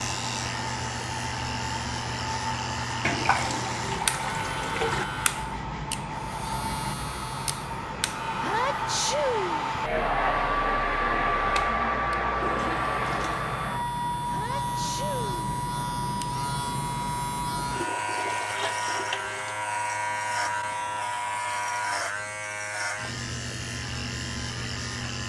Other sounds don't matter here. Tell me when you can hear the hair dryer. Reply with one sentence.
You can hear the hair dryer from 0.0 to 22.1 s.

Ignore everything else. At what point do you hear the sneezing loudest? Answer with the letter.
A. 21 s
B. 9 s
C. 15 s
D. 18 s
B.